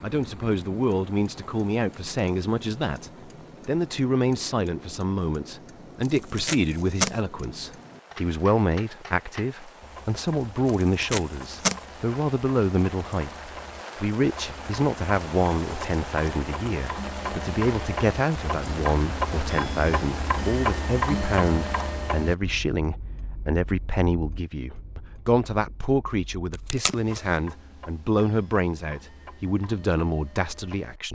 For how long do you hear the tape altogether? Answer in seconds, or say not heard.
3 s.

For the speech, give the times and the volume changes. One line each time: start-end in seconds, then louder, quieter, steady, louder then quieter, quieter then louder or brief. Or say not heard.
0.0-31.1 steady.